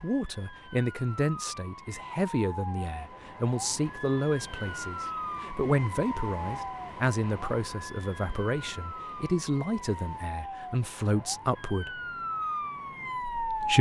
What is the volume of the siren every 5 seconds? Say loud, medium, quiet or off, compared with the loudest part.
medium, medium, loud.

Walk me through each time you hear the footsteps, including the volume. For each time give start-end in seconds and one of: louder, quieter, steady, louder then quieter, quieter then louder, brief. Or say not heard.
not heard.